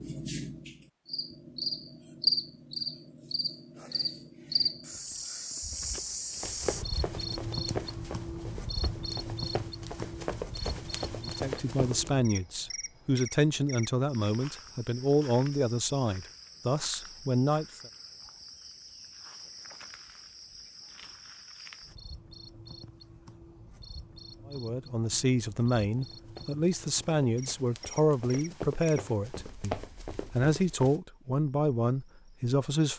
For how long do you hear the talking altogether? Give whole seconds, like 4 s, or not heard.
15 s.